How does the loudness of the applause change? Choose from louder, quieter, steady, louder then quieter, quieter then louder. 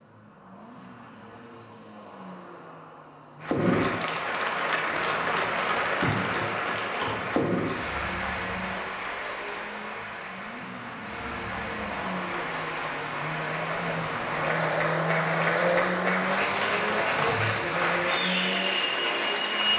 quieter then louder.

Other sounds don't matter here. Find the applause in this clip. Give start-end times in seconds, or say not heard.
3.4-19.7.